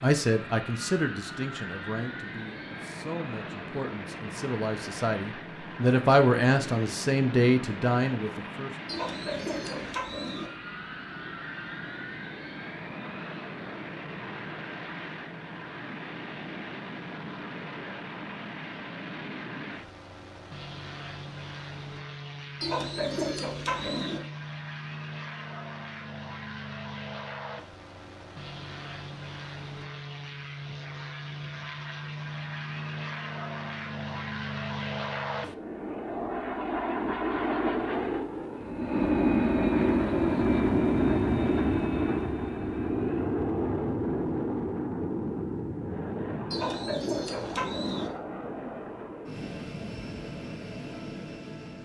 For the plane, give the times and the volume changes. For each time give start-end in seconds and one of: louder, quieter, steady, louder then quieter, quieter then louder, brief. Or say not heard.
0.0-51.7 louder.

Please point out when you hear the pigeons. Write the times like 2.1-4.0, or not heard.
8.8-10.5, 22.6-24.2, 46.5-48.1.